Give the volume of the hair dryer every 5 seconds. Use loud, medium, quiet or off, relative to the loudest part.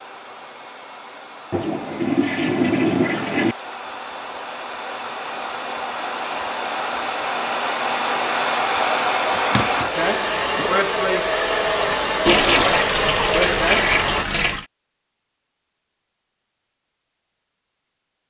quiet, loud, loud, off.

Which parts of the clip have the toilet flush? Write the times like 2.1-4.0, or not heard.
1.5-3.5, 9.3-10.7, 12.2-14.7.